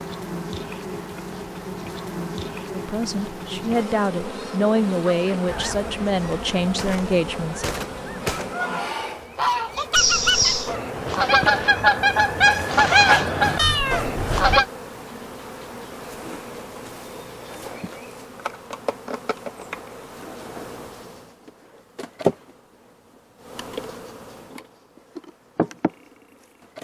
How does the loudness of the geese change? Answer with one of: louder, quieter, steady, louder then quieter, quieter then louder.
louder.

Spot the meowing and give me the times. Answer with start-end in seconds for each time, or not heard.
9.9-10.7, 13.6-14.7.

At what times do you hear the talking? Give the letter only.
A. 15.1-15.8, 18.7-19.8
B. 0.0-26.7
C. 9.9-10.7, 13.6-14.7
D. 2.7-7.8
D.